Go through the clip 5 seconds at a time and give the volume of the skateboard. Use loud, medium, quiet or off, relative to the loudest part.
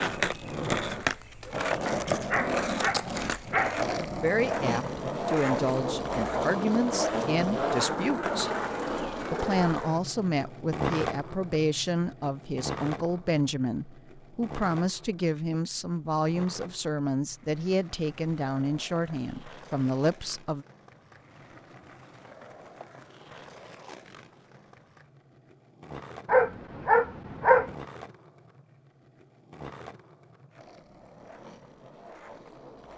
loud, loud, medium, quiet, quiet, quiet, quiet.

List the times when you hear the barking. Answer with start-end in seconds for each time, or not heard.
1.9-3.9, 26.2-27.8.